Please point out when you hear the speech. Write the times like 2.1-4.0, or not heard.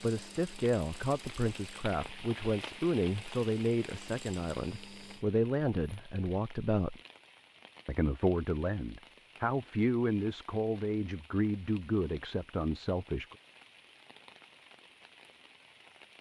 0.0-7.0, 7.8-13.3.